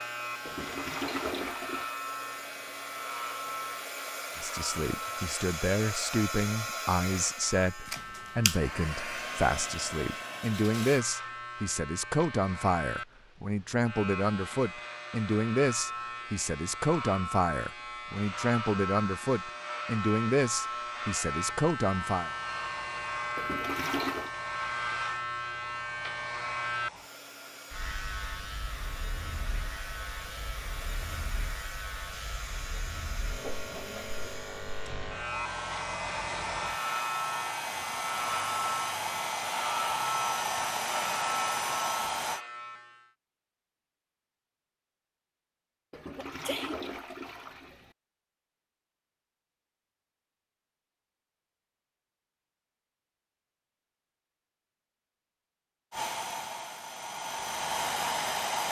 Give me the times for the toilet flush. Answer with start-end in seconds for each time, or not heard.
0.5-1.9, 23.4-24.3, 45.9-48.0.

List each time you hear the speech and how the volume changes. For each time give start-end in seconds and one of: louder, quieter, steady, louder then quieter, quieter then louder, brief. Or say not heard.
4.3-22.3 steady.